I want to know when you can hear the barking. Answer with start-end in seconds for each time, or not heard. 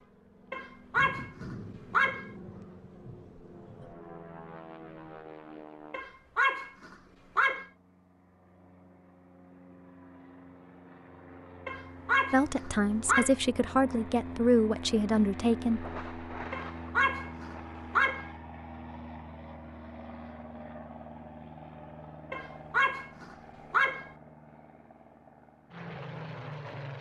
0.5-2.3, 5.9-7.7, 11.7-13.3, 16.5-18.3, 22.3-24.1.